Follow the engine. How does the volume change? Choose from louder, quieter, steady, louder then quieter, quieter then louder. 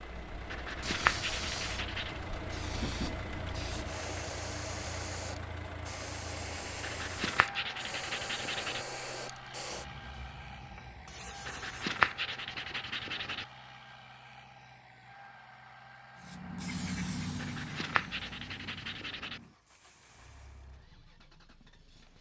quieter.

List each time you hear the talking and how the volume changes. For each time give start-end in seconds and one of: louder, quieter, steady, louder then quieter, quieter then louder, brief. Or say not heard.
not heard.